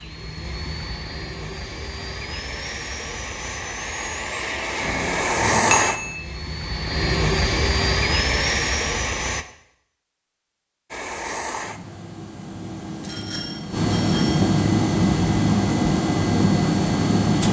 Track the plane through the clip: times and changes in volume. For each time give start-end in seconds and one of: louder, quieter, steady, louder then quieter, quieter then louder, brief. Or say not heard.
0.0-9.4 louder
10.9-17.4 louder.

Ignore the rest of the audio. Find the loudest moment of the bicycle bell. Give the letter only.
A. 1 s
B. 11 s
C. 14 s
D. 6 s
D.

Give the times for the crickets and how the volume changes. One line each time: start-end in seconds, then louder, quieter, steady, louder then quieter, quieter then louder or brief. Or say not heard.
not heard.